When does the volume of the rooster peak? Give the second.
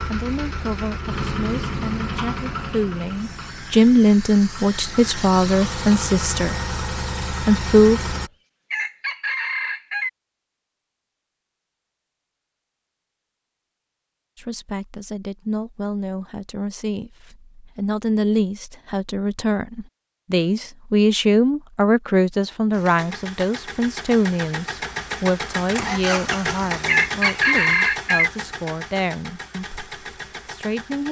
28 s.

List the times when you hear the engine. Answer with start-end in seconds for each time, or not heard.
0.0-8.3, 22.7-31.0.